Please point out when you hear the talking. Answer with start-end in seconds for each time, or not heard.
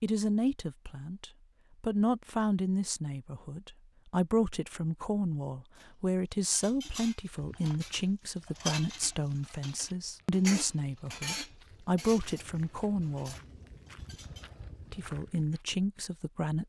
0.0-13.3, 14.9-16.6.